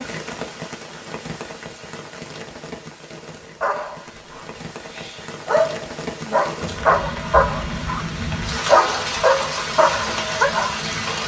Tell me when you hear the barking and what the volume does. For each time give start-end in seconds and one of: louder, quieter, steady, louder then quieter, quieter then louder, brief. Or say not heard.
3.6-8.1 louder
8.7-10.8 brief.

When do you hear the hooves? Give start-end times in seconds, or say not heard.
not heard.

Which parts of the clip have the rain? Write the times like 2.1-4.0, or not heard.
0.0-11.2.